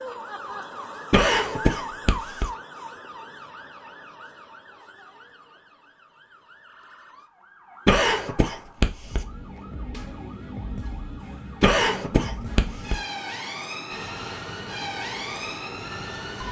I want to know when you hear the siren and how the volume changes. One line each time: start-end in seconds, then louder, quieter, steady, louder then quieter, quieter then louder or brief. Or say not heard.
0.0-16.4 quieter then louder.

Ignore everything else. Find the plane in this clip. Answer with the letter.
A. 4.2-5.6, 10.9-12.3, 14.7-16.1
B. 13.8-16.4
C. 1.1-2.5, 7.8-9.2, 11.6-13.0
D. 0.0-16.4
B.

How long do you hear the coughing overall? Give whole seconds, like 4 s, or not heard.
4 s.